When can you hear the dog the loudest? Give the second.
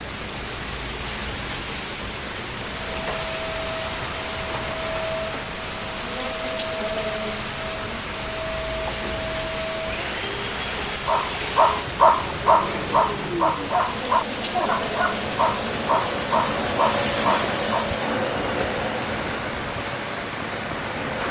12 s.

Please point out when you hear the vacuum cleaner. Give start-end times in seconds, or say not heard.
2.8-21.2.